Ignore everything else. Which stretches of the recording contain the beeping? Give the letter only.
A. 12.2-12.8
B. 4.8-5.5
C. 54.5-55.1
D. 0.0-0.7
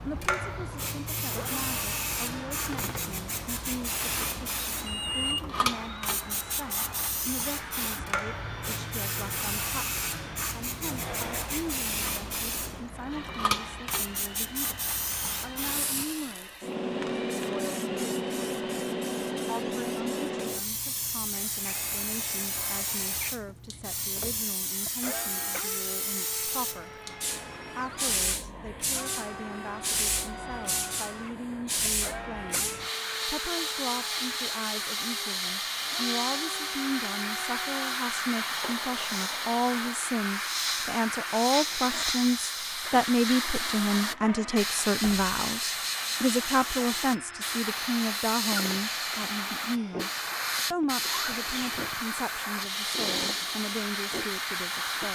B.